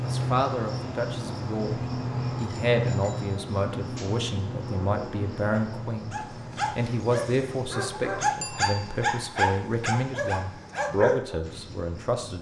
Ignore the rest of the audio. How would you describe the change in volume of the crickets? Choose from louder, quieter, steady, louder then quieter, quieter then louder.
quieter.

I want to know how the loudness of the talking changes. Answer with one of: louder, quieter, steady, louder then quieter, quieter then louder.
steady.